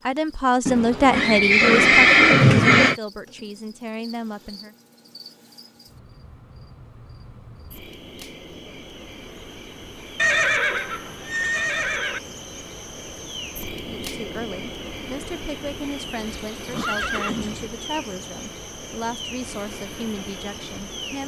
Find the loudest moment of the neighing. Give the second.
2 s.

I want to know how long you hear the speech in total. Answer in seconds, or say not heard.
12 s.